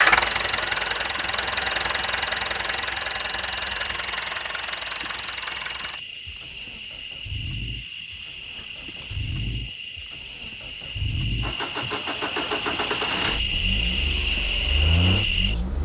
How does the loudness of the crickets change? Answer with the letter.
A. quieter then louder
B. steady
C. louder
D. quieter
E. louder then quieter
C.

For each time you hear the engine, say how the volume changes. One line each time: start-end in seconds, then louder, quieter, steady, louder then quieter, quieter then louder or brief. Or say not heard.
0.0-15.8 quieter then louder.